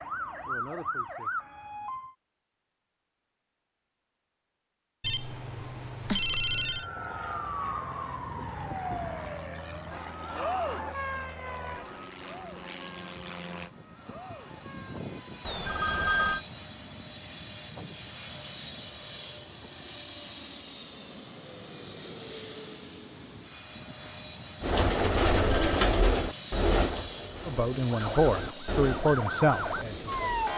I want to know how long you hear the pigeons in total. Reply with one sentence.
The pigeons can be heard for 6 seconds in total.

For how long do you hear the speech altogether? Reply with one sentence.
You can hear the speech for 3 seconds altogether.